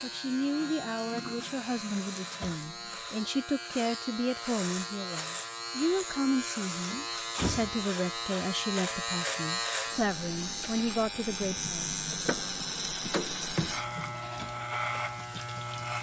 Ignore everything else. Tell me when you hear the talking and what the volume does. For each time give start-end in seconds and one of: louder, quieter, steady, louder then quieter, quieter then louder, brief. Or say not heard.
0.0-11.9 steady.